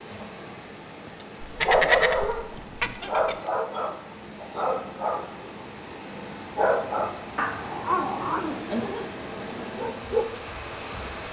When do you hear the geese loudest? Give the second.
2 s.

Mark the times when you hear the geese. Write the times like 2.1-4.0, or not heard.
1.4-3.4.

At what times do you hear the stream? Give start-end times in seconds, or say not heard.
0.0-11.2.